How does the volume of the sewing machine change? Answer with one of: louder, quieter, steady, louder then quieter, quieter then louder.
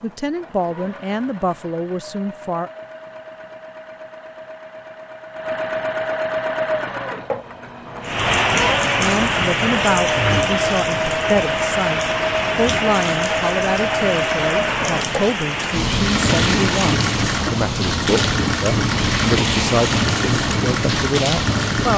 louder.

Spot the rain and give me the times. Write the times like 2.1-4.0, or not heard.
8.0-21.9.